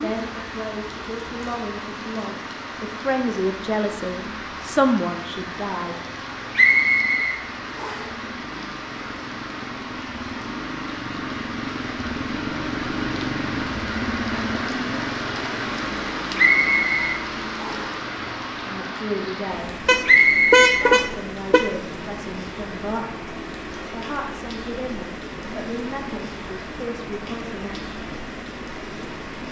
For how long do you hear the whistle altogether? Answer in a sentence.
You can hear the whistle for 4 seconds altogether.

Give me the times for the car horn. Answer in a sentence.
The car horn can be heard from 19.9 to 21.8 s.